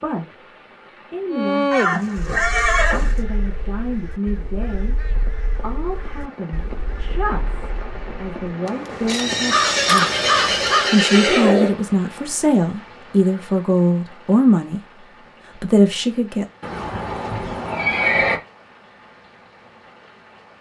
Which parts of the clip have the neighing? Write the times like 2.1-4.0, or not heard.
1.7-3.2, 9.1-11.8, 16.6-18.4.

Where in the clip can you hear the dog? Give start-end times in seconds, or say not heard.
not heard.